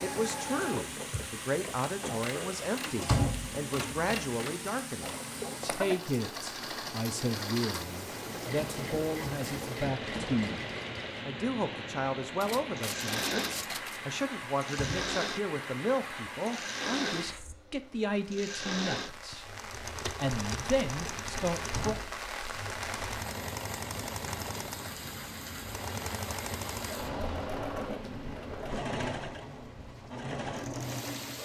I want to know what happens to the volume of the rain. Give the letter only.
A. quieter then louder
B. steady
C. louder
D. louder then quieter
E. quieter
B.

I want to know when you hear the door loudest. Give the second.
3 s.